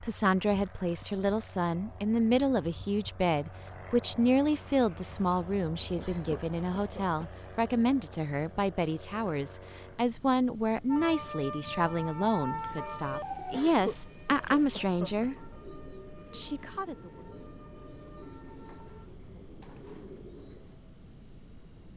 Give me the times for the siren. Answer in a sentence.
The siren can be heard from 10.8 to 19.1 s.